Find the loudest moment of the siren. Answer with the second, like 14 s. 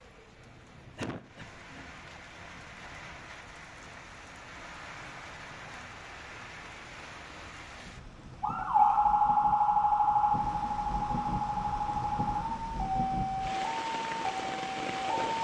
9 s.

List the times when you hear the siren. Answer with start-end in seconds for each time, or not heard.
8.4-15.3.